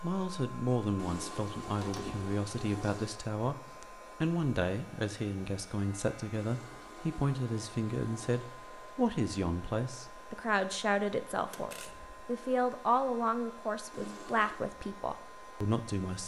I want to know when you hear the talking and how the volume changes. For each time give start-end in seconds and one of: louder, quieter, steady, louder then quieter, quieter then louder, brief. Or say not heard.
0.0-16.2 steady.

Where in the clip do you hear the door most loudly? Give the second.
2 s.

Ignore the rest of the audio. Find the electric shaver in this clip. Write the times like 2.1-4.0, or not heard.
not heard.